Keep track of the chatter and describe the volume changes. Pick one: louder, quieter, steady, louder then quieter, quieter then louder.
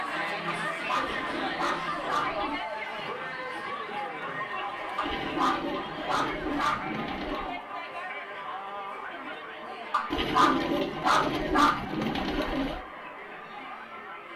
quieter.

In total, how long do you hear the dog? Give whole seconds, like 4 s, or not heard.
6 s.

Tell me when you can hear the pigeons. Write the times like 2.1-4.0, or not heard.
1.0-2.6, 5.0-7.6, 10.1-12.8.